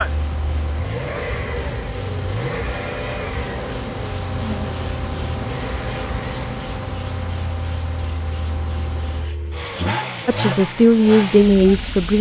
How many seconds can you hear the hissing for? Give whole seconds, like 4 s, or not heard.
12 s.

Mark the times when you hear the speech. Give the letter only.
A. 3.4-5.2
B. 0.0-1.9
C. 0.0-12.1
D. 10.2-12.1
D.